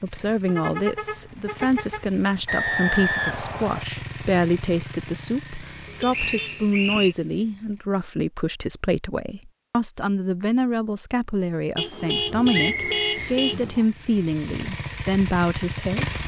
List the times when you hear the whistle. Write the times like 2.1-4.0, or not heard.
2.5-3.9, 6.1-7.2, 12.5-13.8.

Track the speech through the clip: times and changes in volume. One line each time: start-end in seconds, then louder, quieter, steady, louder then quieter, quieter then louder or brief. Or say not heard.
0.0-16.1 steady.